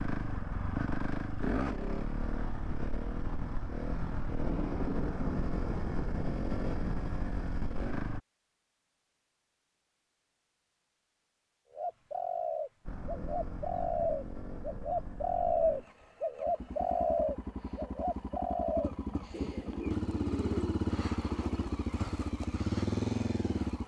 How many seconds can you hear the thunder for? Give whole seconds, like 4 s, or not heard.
3 s.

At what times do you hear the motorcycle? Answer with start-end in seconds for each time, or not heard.
0.0-8.2, 12.8-23.8.